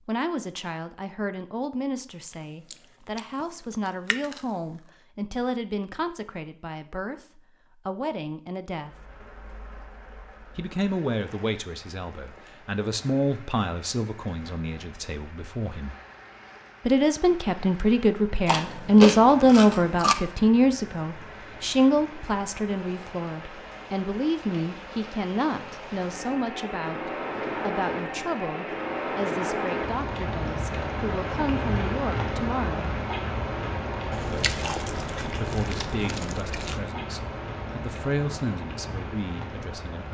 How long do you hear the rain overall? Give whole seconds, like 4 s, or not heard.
31 s.